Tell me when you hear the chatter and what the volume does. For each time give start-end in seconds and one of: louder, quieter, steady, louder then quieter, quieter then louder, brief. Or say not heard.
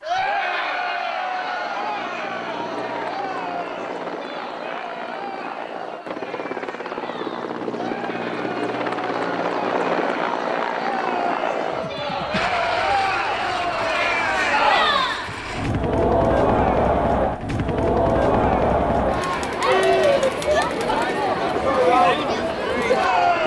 0.0-23.4 quieter then louder.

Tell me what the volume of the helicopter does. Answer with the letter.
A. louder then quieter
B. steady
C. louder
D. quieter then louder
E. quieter
A.